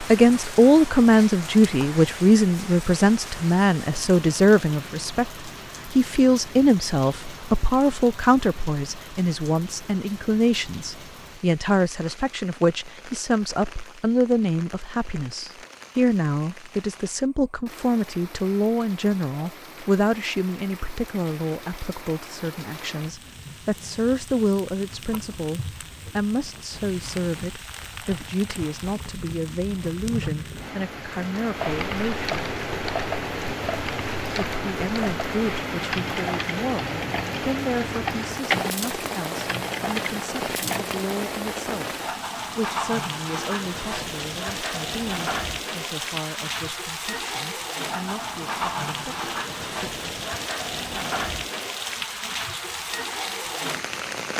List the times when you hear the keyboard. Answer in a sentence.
You can hear the keyboard from 31.6 to 41.1 s.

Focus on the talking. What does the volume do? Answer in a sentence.
The loudness of the talking goes down.